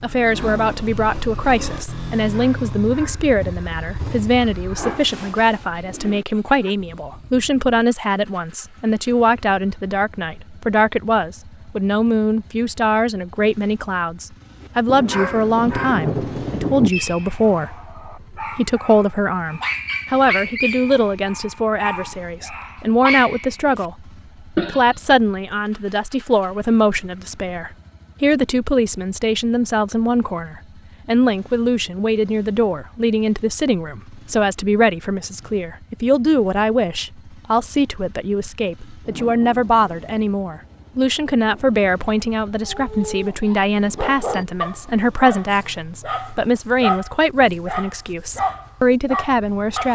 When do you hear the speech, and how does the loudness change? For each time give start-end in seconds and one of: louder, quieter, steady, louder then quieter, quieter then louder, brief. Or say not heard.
0.0-49.8 steady.